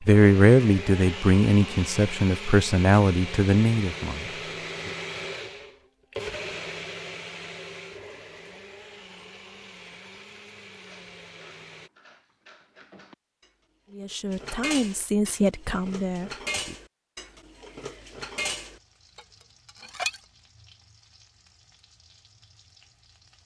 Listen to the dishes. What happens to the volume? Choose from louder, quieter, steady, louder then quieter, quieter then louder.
louder.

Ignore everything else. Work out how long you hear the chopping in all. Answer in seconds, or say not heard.
not heard.